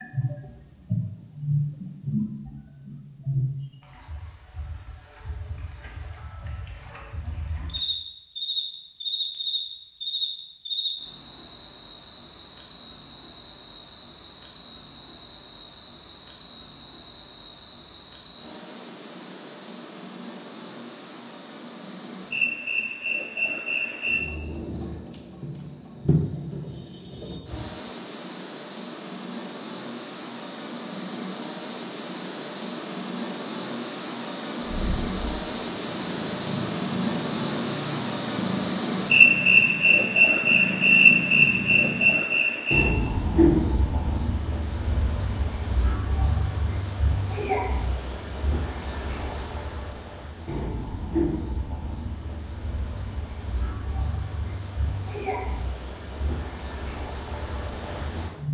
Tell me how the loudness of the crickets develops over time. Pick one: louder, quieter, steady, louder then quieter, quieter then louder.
louder then quieter.